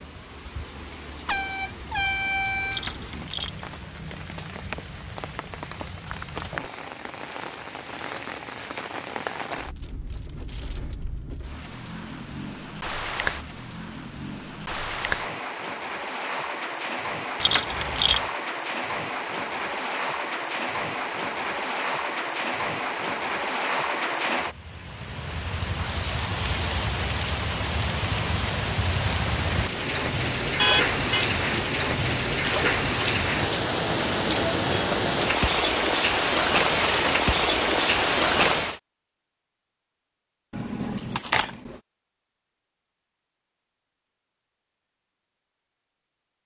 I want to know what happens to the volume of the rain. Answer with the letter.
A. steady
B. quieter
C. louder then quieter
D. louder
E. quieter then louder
D.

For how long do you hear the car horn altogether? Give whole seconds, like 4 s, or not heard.
2 s.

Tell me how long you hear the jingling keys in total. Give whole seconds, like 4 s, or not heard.
3 s.